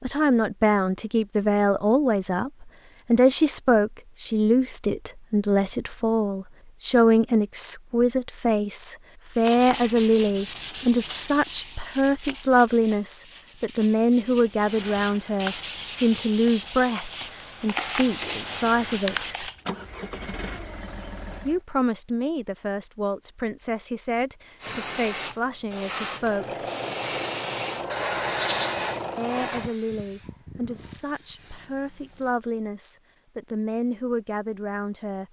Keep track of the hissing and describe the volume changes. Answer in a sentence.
The volume of the hissing goes down.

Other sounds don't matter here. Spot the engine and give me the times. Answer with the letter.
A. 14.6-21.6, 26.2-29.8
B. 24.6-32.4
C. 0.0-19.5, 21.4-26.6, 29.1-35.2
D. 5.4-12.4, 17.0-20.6
A.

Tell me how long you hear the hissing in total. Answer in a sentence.
The hissing can be heard for 8 seconds in total.